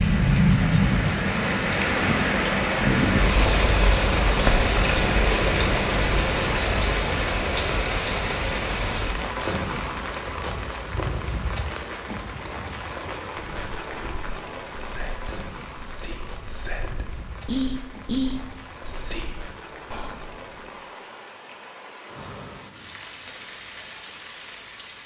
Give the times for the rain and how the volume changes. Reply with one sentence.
You can hear the rain from 0.0 to 25.0 s, getting quieter.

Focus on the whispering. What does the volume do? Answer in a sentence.
The loudness of the whispering goes up, then down.